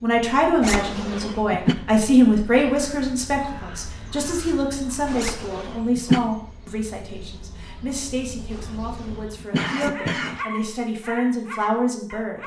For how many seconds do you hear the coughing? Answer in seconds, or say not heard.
4 s.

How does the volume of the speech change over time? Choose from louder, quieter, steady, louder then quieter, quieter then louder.
quieter then louder.